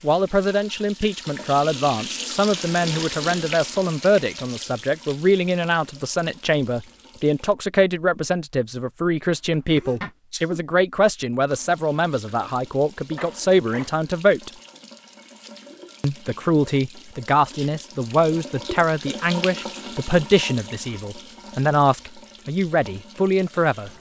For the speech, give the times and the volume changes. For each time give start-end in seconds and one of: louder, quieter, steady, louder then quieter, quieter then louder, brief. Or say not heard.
0.0-14.5 steady
16.0-23.9 steady.